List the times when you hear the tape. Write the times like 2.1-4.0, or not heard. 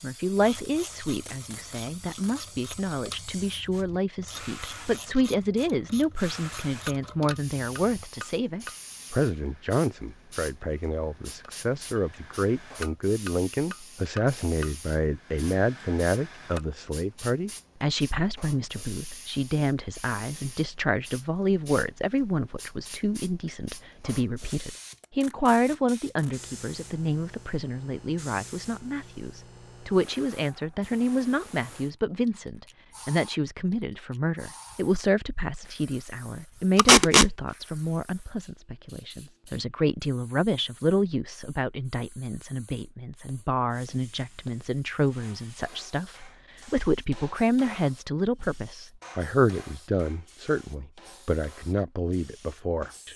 0.4-2.4, 24.4-26.4, 36.8-37.3.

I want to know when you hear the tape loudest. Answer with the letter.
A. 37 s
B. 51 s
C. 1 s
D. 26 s
A.